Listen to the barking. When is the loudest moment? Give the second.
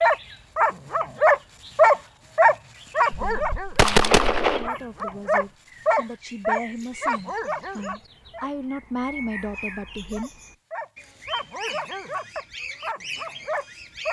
2 s.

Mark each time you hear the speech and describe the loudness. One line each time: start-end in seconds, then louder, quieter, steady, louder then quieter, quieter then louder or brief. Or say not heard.
3.1-10.3 louder.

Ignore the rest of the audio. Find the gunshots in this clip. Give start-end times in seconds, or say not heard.
3.3-4.7.